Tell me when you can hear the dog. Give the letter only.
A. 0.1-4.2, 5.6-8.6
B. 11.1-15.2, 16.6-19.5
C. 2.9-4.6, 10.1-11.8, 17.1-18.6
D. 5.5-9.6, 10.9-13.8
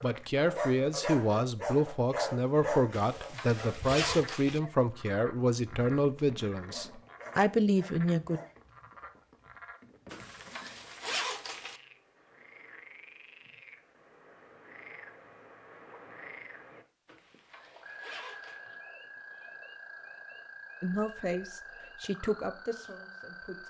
A.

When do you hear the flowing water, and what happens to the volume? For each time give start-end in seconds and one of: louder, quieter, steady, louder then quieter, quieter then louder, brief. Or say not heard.
not heard.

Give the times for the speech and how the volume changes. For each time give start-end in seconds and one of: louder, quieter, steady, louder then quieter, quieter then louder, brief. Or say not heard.
0.0-8.4 steady
20.8-23.6 brief.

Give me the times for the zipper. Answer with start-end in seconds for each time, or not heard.
2.9-4.6, 10.1-11.8, 17.1-18.6.